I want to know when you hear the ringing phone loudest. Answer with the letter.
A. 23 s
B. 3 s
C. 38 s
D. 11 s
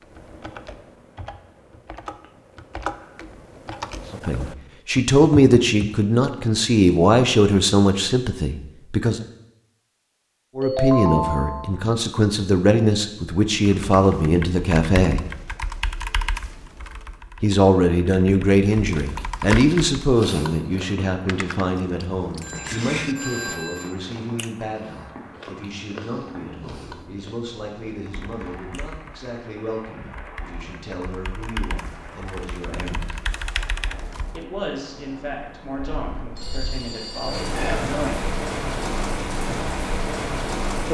D.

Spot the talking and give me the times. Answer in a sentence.
The talking can be heard from 4.2 to 9.2 s, from 10.6 to 15.2 s, from 17.4 to 33.1 s and from 34.3 to 38.4 s.